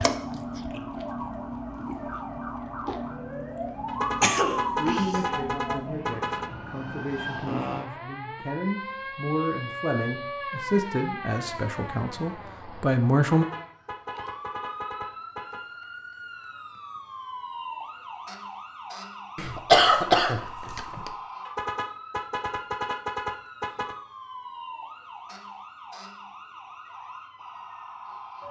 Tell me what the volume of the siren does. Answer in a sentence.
The volume of the siren goes down.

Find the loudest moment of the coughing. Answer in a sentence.
The loudest moment of the coughing is at 20 seconds.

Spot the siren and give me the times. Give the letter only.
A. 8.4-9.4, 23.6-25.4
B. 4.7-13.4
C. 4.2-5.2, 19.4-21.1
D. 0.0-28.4
D.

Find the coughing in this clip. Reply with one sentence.
The coughing can be heard from 4.2 to 5.2 s and from 19.4 to 21.1 s.